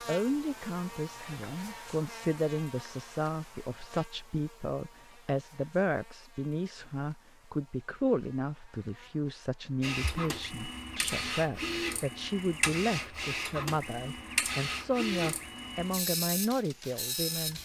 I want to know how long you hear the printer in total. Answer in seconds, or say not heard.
8 s.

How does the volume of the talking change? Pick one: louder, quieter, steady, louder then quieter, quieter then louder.
steady.